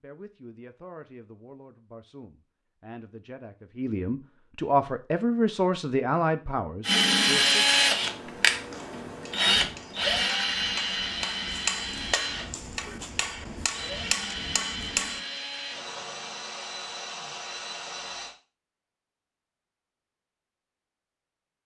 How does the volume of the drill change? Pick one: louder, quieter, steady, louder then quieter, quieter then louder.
quieter.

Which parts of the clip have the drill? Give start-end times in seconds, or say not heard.
6.8-18.4.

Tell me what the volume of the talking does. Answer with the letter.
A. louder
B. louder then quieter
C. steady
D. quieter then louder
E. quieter
A.